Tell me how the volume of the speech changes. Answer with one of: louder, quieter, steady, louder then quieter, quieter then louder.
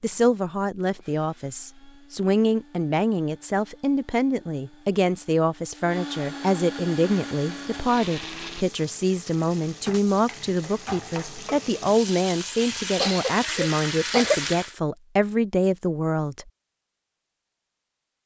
steady.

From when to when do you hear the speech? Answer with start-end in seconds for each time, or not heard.
0.0-16.5.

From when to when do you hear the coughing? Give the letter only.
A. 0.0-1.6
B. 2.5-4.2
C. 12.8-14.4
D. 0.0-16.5
C.